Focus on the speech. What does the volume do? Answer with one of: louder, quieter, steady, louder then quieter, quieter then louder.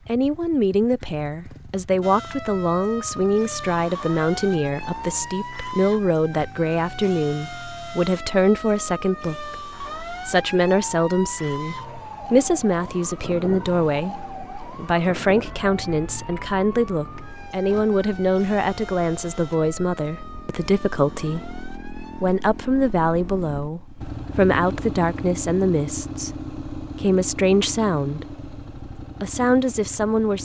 steady.